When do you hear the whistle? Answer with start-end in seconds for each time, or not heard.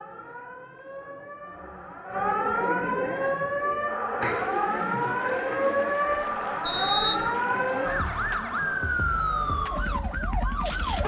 6.6-7.3.